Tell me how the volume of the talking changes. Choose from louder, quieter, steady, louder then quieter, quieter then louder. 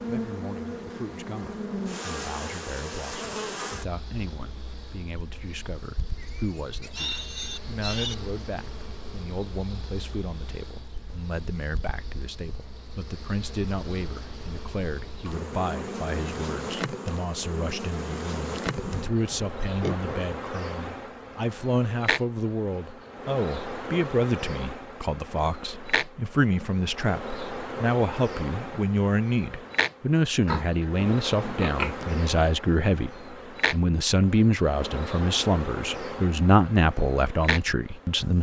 louder.